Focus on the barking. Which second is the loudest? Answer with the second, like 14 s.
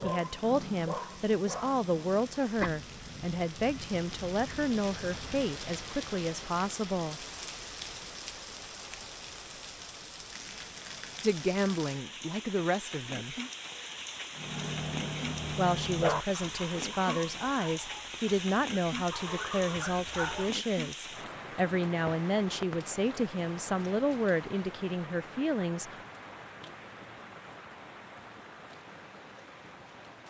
16 s.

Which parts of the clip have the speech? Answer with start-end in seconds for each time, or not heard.
0.0-7.2, 11.2-13.3, 15.6-25.9.